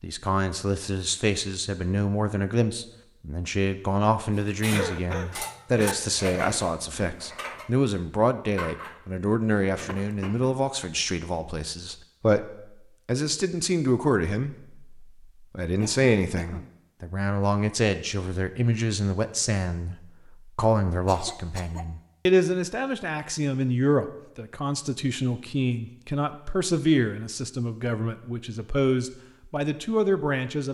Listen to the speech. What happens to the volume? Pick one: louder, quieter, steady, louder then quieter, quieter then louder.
steady.